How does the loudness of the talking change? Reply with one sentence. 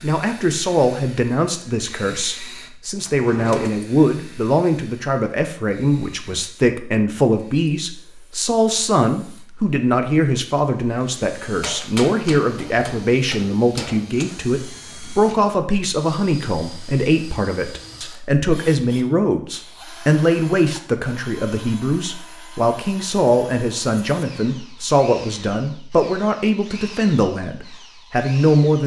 The loudness of the talking stays about the same.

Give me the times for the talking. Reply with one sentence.
You can hear the talking from 0.0 to 28.8 s.